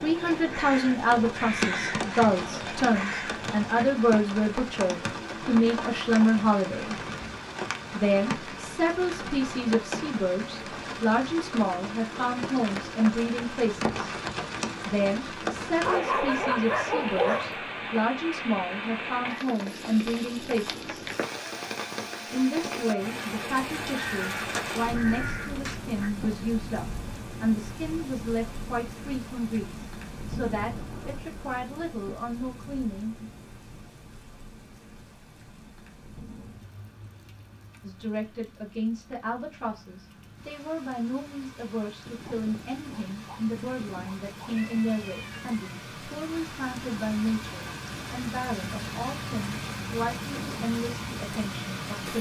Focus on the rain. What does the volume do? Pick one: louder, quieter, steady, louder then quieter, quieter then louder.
quieter then louder.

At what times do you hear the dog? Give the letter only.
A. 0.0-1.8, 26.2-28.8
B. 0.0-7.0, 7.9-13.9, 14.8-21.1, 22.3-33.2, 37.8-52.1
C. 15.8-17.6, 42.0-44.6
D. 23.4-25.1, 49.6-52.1
C.